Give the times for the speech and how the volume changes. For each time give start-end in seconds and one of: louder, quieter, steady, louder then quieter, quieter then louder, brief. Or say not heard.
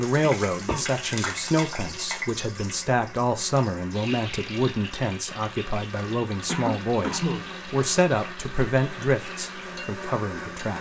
0.0-10.7 steady.